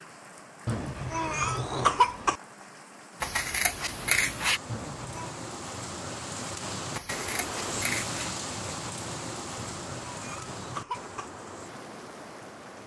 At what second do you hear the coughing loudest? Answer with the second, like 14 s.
2 s.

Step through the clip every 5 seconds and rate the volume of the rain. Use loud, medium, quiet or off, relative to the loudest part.
medium, loud, medium.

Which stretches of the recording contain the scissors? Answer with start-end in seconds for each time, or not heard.
3.2-4.6, 6.9-8.2.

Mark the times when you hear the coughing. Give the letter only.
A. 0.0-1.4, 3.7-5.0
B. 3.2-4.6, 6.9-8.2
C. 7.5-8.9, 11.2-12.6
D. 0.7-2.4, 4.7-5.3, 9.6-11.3
D.